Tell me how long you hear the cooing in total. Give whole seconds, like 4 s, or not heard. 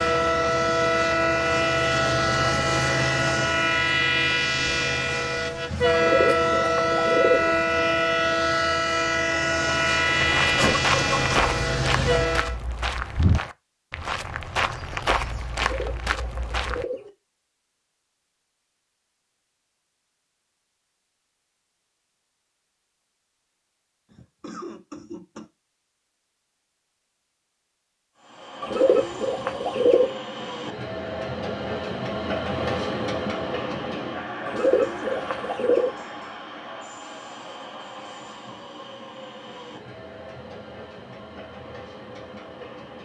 6 s.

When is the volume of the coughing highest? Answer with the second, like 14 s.
11 s.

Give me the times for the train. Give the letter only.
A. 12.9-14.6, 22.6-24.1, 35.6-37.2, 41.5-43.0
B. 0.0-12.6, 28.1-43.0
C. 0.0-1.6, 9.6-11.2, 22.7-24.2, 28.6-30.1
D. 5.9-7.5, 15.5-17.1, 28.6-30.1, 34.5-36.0
B.